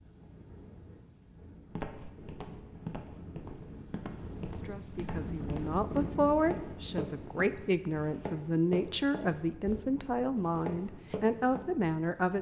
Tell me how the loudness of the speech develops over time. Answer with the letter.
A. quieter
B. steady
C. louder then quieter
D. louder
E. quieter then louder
B.